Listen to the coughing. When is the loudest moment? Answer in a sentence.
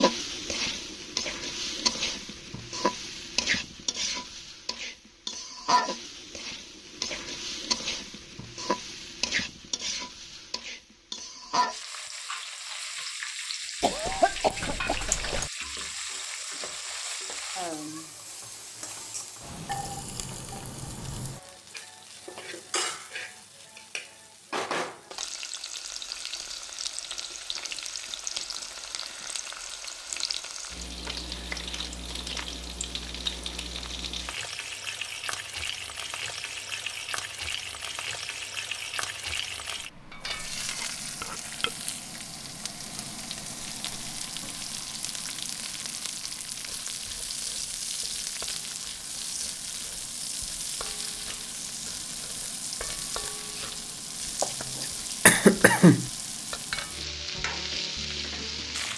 The loudest moment of the coughing is at 55 seconds.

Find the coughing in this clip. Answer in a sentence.
You can hear the coughing from 13.8 to 15.5 s and from 54.4 to 56.1 s.